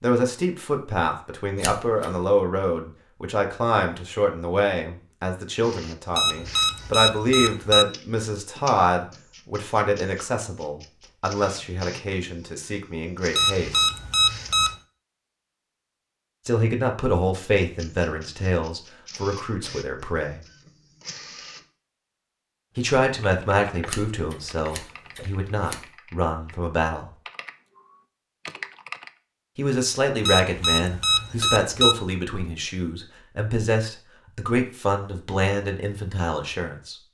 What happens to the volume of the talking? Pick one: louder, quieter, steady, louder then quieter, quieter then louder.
steady.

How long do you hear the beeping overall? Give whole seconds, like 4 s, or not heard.
5 s.